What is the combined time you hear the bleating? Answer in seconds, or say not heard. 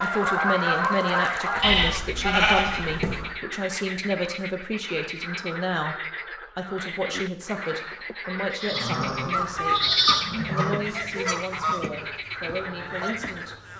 4 s.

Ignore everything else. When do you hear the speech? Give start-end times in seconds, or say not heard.
0.0-13.6.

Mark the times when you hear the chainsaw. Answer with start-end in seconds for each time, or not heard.
not heard.